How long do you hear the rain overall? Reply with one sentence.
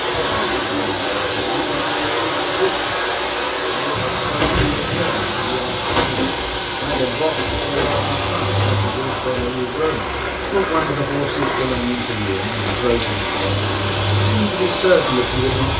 You can hear the rain for 12 seconds altogether.